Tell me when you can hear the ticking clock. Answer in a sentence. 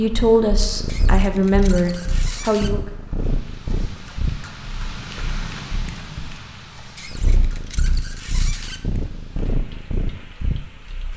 The ticking clock can't be heard in this clip.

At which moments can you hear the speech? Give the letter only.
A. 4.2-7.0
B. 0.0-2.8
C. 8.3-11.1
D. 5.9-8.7
B.